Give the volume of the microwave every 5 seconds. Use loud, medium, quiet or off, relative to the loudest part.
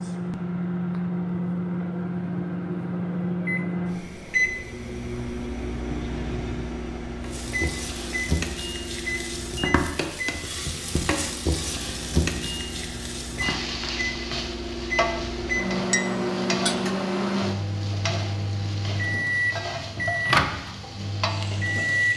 loud, medium, medium, loud, loud.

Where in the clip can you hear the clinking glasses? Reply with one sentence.
The clinking glasses can be heard from 15.9 to 16.8 s.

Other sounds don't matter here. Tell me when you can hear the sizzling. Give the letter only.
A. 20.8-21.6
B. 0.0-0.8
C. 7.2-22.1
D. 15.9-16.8
C.